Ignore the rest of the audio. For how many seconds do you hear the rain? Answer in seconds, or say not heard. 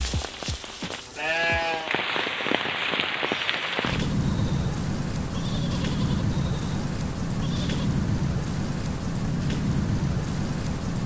11 s.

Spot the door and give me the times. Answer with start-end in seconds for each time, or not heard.
not heard.